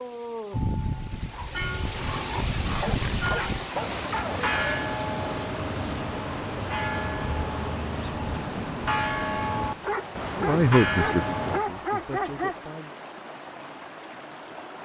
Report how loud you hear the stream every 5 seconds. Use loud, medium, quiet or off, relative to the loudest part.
loud, medium, medium.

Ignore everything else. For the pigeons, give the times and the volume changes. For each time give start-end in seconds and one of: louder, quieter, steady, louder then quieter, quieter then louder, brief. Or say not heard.
not heard.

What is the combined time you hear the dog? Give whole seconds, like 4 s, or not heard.
6 s.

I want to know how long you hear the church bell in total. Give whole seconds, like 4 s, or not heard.
11 s.